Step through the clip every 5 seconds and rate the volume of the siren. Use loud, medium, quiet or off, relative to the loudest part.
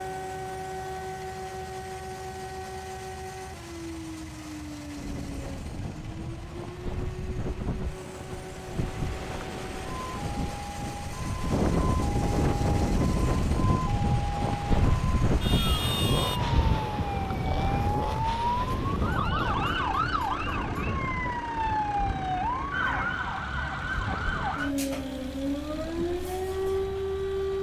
medium, quiet, medium, loud, loud, loud.